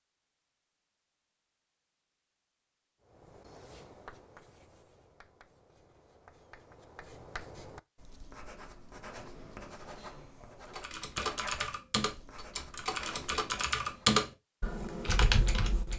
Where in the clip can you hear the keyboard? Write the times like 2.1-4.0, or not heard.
10.8-15.9.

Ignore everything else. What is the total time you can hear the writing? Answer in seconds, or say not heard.
11 s.